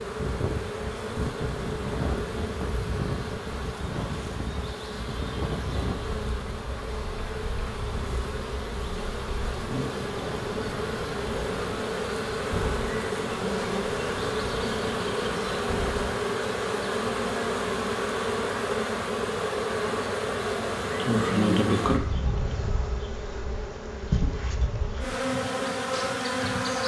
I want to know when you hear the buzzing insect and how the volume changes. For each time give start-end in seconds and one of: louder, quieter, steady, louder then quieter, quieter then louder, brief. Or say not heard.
0.0-26.8 louder.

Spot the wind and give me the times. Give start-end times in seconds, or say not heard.
0.0-16.2.